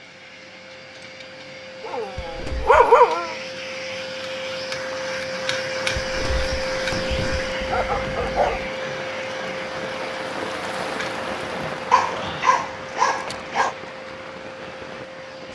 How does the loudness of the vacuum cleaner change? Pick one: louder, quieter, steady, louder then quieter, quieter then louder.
louder then quieter.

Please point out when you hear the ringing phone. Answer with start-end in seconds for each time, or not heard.
not heard.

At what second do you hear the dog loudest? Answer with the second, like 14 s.
3 s.